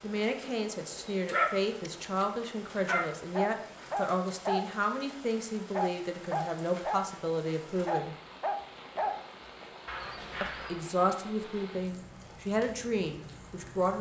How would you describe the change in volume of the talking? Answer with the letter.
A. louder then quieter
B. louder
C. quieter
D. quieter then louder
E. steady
E.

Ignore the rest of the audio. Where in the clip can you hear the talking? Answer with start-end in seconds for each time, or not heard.
0.0-8.2, 10.4-13.9.